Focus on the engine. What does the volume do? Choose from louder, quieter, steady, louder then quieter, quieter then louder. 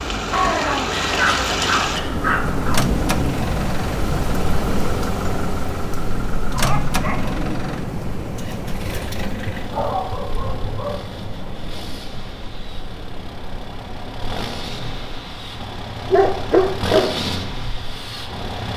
quieter then louder.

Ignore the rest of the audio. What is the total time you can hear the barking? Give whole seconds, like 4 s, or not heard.
6 s.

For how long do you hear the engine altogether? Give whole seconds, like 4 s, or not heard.
19 s.